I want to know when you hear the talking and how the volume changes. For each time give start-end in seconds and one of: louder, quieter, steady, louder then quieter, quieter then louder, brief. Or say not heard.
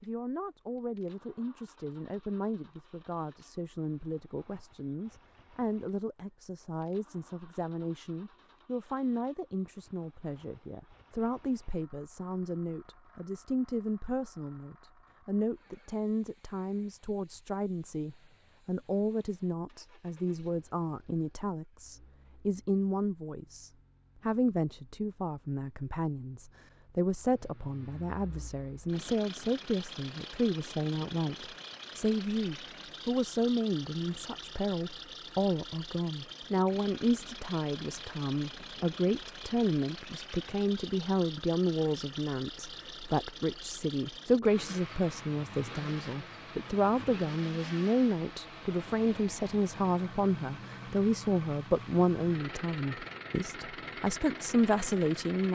0.0-55.5 louder.